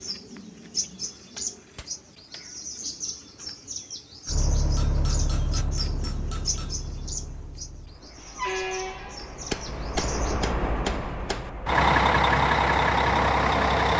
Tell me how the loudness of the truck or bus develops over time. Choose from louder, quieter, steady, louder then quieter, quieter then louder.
quieter then louder.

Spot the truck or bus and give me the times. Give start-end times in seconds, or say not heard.
4.2-13.9.